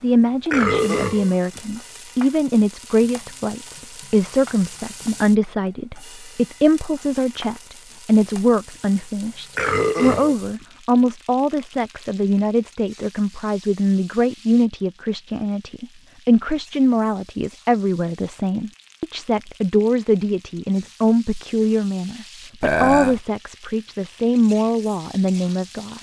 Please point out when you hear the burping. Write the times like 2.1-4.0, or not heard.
0.5-1.6, 9.6-10.4, 22.6-23.2.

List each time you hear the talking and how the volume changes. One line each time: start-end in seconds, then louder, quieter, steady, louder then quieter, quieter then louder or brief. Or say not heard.
0.0-25.9 steady.